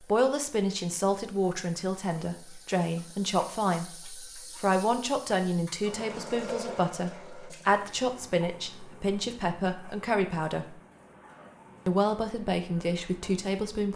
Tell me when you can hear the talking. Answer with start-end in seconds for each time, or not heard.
0.0-10.8, 11.8-13.9.